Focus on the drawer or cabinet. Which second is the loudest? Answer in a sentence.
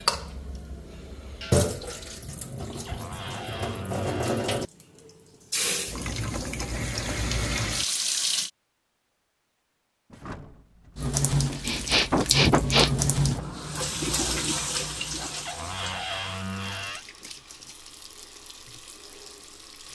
The volume of the drawer or cabinet peaks at 16 seconds.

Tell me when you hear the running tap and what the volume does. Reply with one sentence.
You can hear the running tap from 0.0 to 8.5 s, getting quieter then louder; and from 10.9 to 19.9 s, getting quieter.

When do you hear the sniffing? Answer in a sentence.
You can hear the sniffing from 11.6 to 13.4 s.